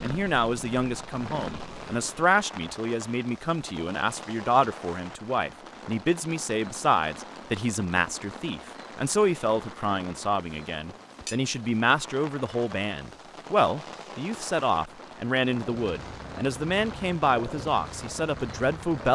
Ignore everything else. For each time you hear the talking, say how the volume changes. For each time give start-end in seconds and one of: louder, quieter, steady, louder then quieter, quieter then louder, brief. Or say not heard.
0.0-19.1 steady.